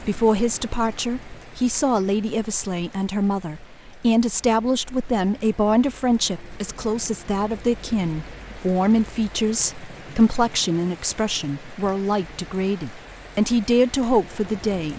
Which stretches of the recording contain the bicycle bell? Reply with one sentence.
You can't hear the bicycle bell here.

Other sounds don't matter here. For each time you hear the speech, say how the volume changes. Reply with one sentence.
You can hear the speech from 0.0 to 14.9 s, at a steady volume.